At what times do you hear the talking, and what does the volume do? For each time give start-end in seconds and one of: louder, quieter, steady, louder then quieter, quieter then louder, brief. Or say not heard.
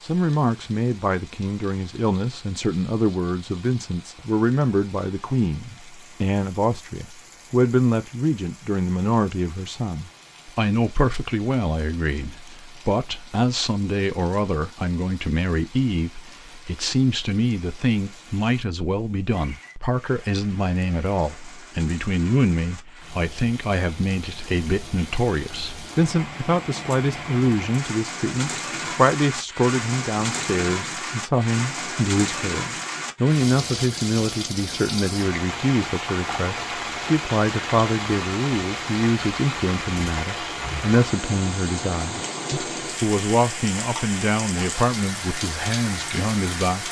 0.0-46.8 steady.